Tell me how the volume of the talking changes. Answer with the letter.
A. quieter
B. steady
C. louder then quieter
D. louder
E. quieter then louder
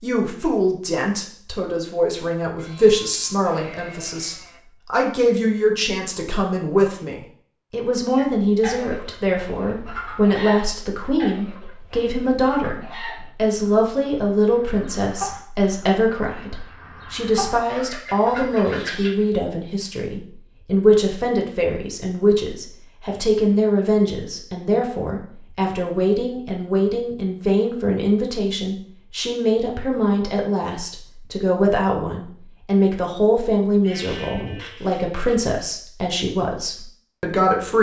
B.